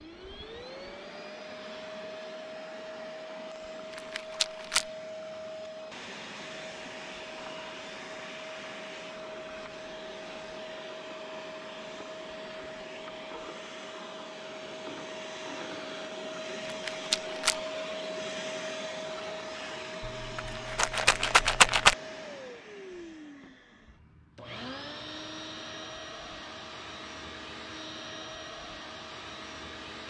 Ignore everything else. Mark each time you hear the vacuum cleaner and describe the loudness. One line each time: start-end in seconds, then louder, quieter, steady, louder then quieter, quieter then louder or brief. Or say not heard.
0.0-30.0 steady.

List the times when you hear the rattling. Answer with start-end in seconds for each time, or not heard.
4.2-4.8, 16.9-17.6, 20.0-21.9.